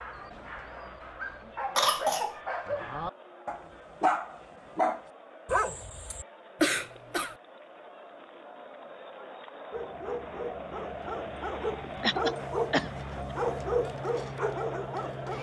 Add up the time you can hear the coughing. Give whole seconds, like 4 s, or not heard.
2 s.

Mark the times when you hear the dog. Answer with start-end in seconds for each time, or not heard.
0.0-6.2, 9.7-15.3.